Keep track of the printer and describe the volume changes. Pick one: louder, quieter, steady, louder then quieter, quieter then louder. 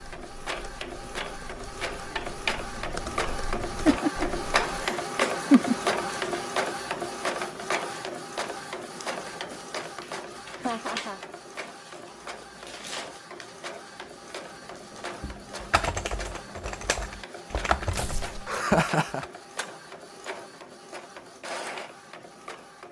quieter.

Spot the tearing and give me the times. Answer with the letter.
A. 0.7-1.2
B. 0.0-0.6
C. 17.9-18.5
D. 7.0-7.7
C.